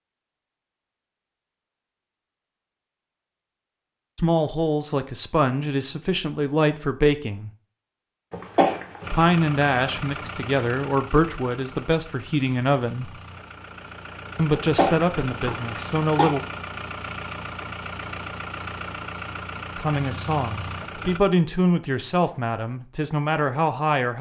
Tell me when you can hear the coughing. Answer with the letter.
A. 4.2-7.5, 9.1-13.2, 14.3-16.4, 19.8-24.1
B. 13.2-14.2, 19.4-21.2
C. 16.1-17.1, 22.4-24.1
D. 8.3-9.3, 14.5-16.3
D.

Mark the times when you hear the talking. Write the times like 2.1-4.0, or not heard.
4.2-7.5, 9.1-13.2, 14.3-16.4, 19.8-24.1.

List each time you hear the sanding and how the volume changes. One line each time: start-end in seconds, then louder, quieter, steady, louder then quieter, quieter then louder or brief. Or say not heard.
not heard.